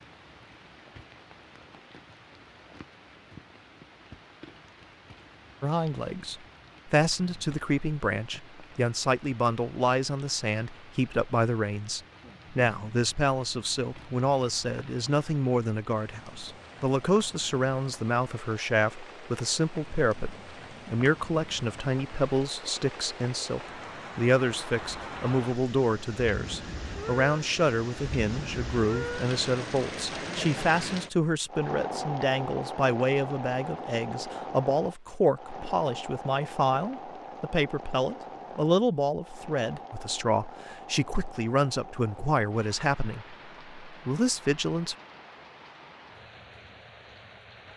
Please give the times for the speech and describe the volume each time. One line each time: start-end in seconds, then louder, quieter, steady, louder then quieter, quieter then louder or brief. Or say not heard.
5.6-45.0 steady.